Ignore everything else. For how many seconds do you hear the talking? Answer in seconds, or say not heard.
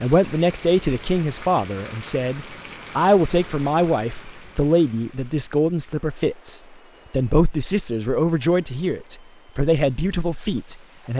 11 s.